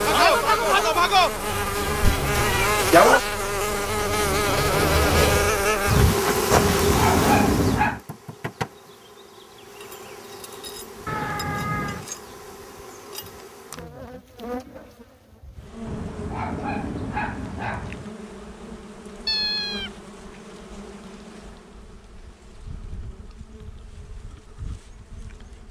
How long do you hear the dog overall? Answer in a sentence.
You can hear the dog for 4 seconds altogether.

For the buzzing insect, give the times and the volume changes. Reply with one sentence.
The buzzing insect can be heard from 0.0 to 25.6 s, getting quieter.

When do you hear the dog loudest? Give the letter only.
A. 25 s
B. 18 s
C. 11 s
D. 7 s
D.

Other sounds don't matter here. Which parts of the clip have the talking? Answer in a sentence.
The talking can't be heard in this clip.